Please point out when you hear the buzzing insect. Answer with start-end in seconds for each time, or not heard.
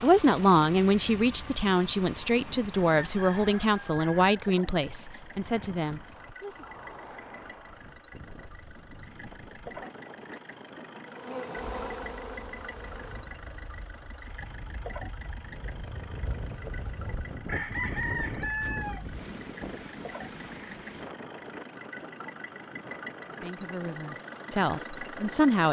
11.1-13.4.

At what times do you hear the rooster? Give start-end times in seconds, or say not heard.
2.9-4.4, 17.4-19.2.